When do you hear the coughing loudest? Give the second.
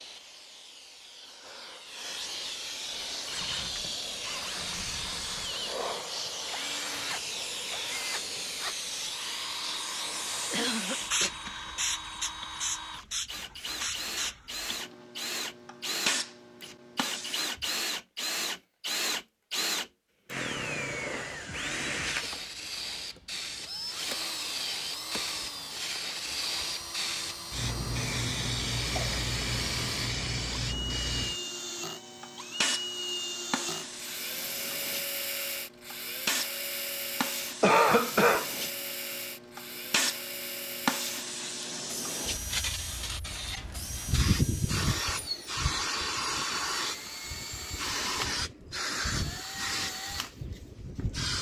38 s.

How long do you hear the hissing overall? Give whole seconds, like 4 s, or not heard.
47 s.